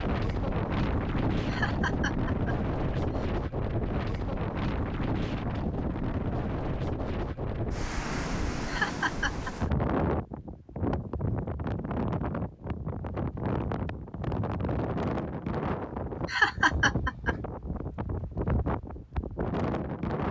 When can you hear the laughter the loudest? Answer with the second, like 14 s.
17 s.